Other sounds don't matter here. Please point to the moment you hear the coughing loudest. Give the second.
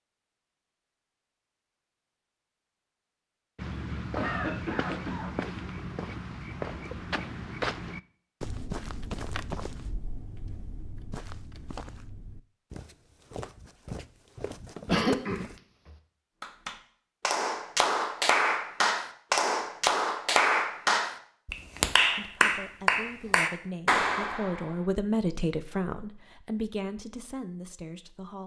15 s.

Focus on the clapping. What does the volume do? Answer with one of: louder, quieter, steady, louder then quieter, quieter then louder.
steady.